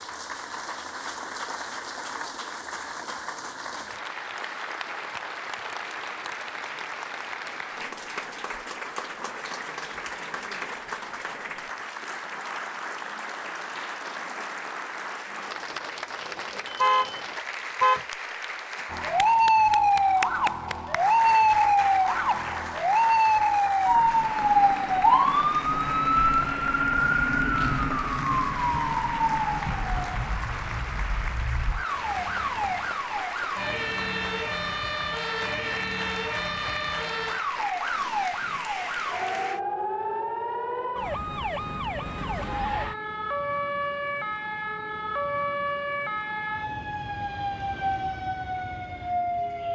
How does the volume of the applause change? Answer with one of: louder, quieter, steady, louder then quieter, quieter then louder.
steady.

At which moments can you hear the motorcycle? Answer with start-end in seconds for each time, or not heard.
not heard.